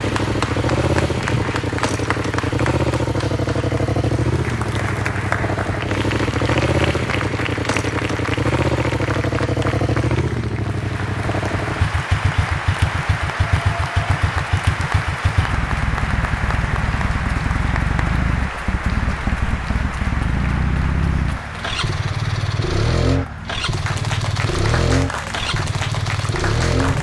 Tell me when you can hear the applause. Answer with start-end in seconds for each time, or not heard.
0.0-26.9.